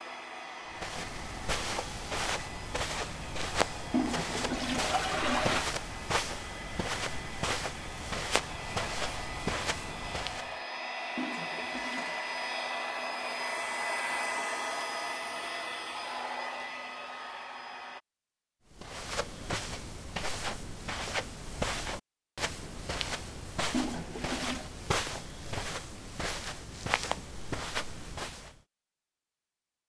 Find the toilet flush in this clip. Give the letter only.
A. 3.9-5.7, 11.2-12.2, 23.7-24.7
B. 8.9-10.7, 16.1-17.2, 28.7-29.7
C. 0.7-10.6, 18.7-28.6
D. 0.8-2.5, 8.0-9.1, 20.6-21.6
A.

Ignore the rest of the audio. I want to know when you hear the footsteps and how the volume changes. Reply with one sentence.
You can hear the footsteps from 0.7 to 10.6 s, at a steady volume; and from 18.7 to 28.6 s, at a steady volume.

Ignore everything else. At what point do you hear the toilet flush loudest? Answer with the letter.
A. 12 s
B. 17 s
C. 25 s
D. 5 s
D.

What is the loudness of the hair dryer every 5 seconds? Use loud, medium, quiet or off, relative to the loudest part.
medium, medium, loud, loud, off, off.